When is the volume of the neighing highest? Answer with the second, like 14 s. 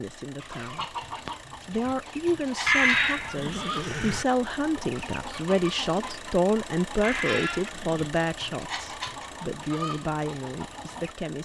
3 s.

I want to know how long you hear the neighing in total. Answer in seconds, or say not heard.
3 s.